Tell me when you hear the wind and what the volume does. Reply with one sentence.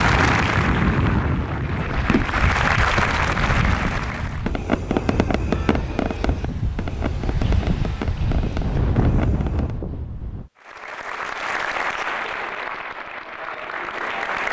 You can hear the wind from 0.0 to 10.5 s, getting quieter then louder.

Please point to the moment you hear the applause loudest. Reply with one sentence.
The volume of the applause peaks at 3 seconds.